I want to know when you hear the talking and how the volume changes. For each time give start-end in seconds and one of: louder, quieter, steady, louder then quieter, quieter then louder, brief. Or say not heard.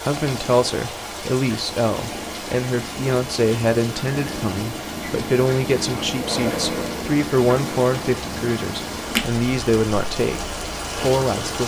0.0-11.6 steady.